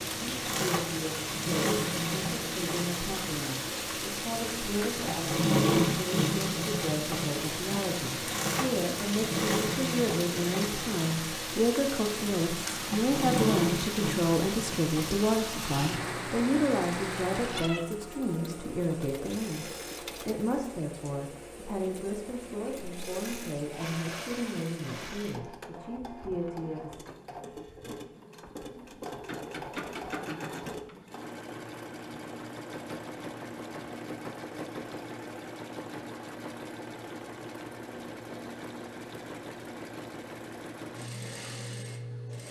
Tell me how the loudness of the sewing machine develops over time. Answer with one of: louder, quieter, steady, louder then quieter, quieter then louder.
quieter.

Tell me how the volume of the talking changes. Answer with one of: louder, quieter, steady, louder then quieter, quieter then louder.
louder then quieter.